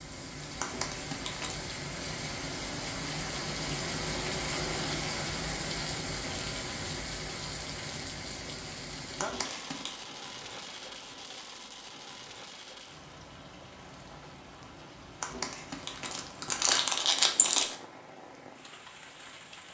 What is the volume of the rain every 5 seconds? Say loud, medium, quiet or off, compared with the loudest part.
loud, loud, medium, quiet.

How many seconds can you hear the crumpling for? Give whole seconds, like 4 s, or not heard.
4 s.